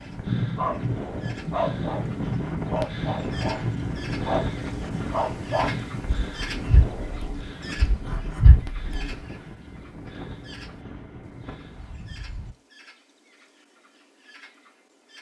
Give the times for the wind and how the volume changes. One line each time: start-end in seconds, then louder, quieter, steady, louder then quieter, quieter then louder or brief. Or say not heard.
0.0-12.6 quieter.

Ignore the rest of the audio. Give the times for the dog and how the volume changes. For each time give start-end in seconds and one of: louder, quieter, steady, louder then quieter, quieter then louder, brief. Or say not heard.
0.1-9.2 steady.